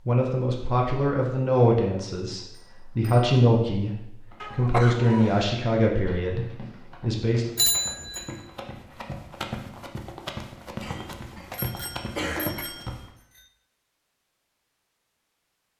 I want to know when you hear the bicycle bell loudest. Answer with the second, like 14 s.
8 s.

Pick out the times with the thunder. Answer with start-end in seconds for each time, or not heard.
not heard.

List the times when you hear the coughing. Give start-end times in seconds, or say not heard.
4.4-5.5, 10.8-12.7.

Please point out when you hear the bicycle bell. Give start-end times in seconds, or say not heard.
2.5-3.3, 7.5-8.3, 11.5-13.4.